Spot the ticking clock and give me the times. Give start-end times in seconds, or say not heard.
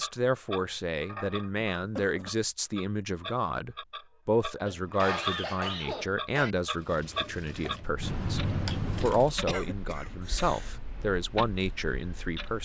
0.0-12.6.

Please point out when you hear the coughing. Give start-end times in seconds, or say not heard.
1.8-2.4, 4.7-6.5, 9.4-10.7.